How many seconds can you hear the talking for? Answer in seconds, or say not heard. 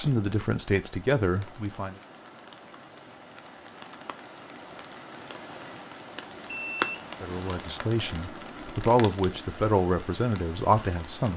6 s.